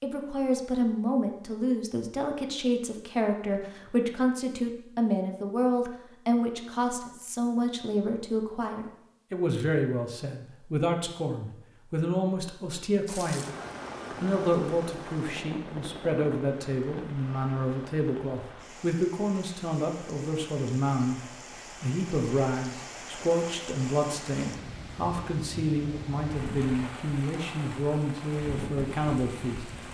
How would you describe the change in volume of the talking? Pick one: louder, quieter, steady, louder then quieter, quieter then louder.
steady.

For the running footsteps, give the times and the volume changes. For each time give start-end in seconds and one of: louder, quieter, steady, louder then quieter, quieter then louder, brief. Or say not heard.
not heard.